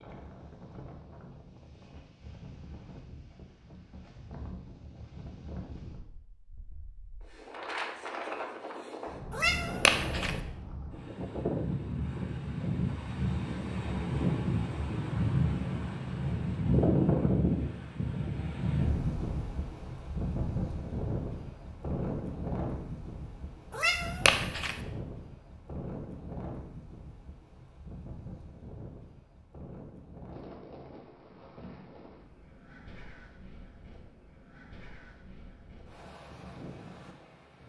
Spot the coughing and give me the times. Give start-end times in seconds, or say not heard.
not heard.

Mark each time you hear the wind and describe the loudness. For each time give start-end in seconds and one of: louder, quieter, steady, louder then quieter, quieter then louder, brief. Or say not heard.
0.0-37.6 louder then quieter.